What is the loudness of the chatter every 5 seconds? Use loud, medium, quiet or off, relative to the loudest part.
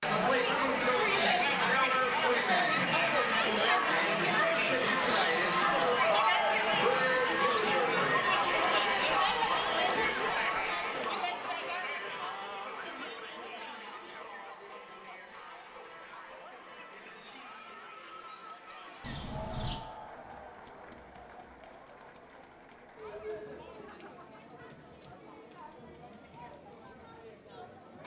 loud, loud, medium, quiet, quiet, quiet.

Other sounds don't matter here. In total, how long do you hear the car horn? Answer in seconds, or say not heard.
2 s.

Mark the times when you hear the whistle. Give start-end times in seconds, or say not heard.
not heard.